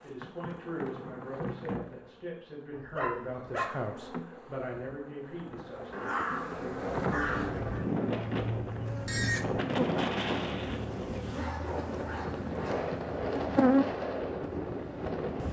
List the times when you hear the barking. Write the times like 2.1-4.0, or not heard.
2.7-3.6, 5.9-7.8, 11.3-12.9.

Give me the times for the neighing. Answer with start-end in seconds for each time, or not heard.
8.8-9.4.